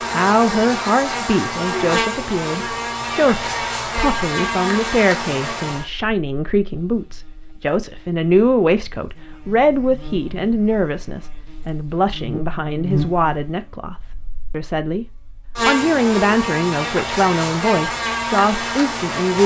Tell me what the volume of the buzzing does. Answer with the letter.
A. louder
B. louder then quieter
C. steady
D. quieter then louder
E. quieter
D.